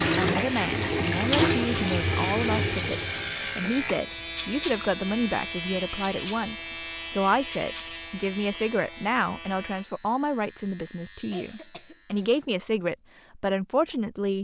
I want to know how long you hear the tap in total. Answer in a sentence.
You can hear the tap for 4 seconds altogether.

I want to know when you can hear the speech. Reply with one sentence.
The speech can be heard from 0.0 to 14.3 s.